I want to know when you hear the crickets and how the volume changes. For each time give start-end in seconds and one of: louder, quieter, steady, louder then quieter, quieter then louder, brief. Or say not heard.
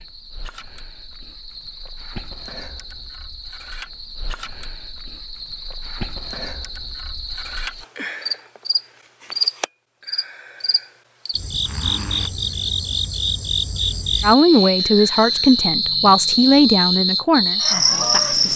0.0-18.5 louder.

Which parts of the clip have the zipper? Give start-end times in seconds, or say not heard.
11.6-12.3.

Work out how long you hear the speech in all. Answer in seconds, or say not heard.
4 s.